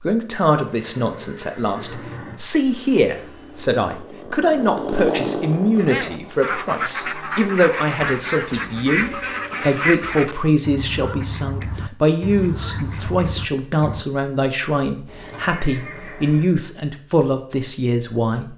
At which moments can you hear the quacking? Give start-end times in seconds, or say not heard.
5.8-14.1.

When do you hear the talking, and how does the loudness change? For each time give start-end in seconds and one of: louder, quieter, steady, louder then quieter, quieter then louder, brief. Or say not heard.
0.0-18.5 steady.